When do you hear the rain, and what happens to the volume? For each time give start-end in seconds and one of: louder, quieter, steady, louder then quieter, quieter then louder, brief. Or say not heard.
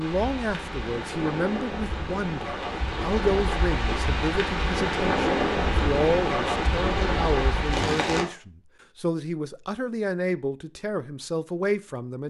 0.0-8.2 louder.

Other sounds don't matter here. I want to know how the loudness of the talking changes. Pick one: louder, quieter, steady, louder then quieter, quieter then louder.
steady.